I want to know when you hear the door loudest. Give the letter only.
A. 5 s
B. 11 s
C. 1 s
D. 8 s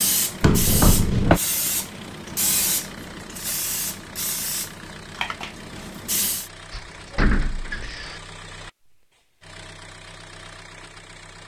C.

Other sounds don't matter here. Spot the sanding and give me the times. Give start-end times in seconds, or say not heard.
not heard.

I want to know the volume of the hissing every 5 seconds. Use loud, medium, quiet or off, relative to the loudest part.
loud, loud, off.